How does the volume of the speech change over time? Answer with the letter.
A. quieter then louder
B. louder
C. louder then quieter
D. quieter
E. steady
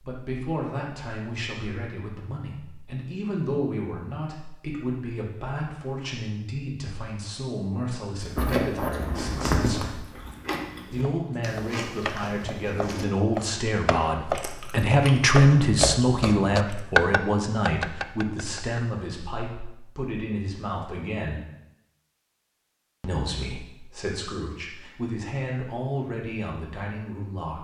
C.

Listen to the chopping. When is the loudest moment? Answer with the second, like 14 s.
17 s.